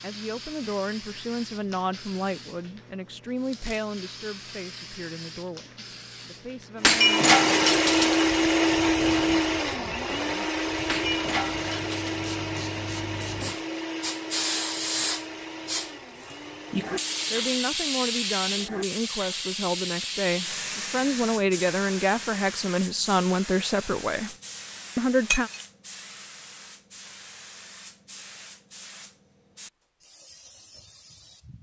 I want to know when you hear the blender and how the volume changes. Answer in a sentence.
You can hear the blender from 6.8 to 17.6 s, getting quieter.